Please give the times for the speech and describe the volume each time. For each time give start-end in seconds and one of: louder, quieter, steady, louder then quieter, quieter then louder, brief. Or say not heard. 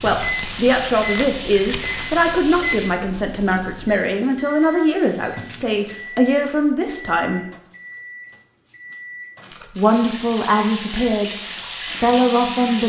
0.0-7.5 steady
9.8-11.3 brief
12.0-12.8 brief.